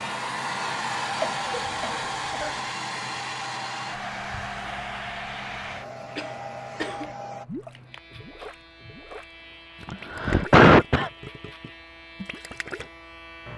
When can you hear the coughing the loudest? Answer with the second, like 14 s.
11 s.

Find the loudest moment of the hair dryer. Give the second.
1 s.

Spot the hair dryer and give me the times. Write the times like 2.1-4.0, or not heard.
0.0-7.5.